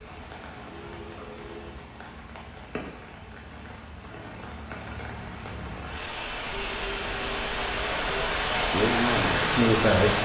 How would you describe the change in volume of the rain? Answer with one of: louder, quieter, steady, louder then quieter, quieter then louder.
louder.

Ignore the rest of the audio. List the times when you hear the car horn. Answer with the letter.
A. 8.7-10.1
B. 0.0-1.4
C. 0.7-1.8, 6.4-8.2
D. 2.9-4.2
C.